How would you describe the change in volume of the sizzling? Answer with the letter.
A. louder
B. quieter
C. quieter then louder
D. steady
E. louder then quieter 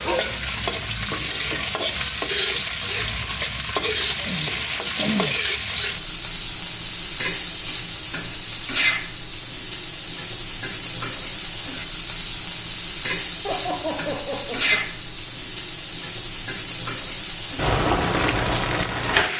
D.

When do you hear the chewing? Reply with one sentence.
The chewing can't be heard in this clip.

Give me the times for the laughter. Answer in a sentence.
The laughter can be heard from 13.4 to 14.8 s.